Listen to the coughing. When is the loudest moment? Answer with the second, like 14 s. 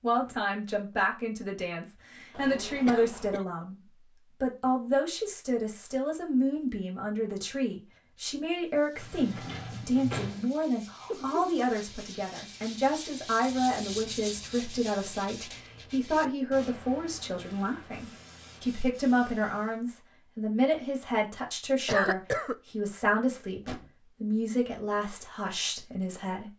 22 s.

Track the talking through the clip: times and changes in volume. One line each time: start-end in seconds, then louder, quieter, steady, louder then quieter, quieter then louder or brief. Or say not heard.
0.0-26.5 steady.